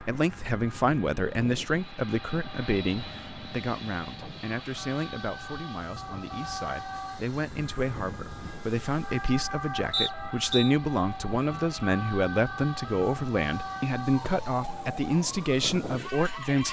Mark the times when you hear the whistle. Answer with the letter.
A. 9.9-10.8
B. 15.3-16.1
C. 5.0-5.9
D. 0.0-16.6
A.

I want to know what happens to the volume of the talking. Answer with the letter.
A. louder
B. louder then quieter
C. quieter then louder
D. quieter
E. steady
C.